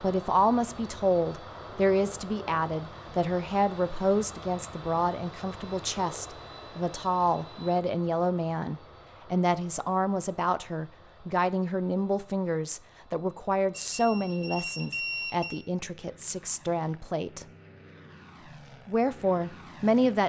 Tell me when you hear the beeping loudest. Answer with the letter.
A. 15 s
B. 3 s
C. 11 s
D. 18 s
A.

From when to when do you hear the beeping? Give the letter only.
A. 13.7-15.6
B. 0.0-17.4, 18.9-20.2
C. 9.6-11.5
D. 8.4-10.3
A.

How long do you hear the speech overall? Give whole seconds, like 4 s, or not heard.
19 s.